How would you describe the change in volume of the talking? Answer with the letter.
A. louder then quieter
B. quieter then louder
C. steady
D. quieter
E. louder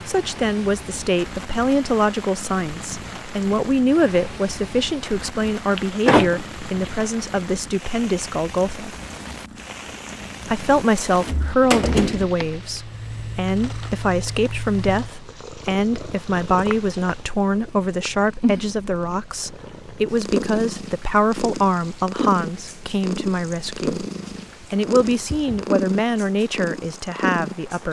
C.